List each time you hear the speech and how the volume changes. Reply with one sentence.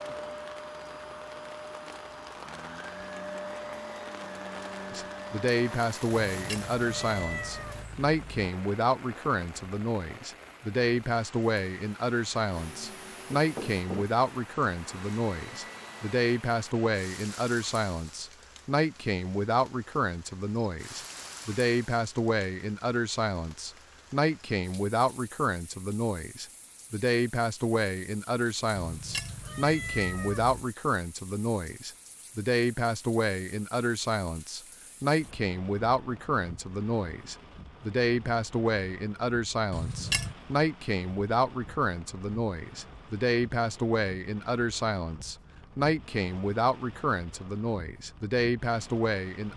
You can hear the speech from 4.9 to 49.5 s, at a steady volume.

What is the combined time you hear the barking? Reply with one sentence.
You can't hear the barking here.